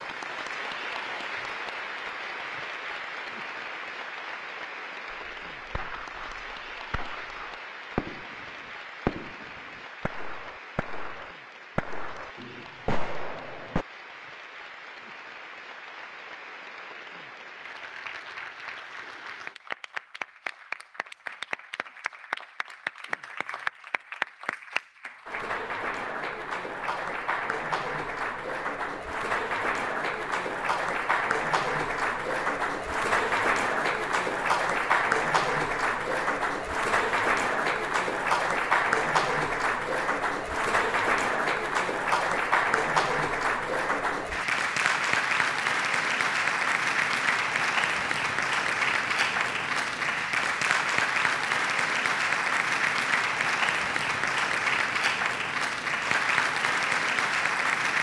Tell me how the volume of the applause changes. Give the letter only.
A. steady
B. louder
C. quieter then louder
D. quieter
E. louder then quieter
B.